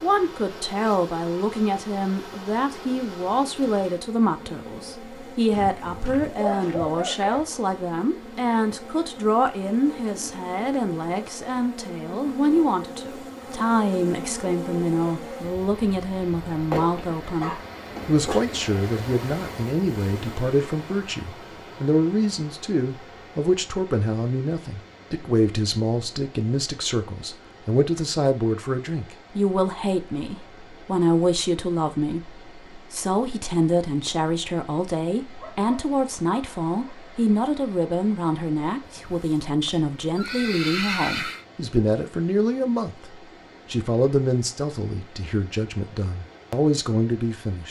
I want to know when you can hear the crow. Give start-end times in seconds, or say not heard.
not heard.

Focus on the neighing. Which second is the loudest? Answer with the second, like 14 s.
41 s.